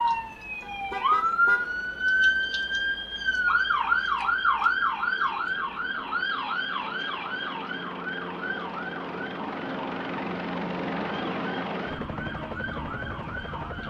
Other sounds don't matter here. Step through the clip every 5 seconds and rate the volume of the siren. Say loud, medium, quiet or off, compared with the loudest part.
loud, medium, quiet.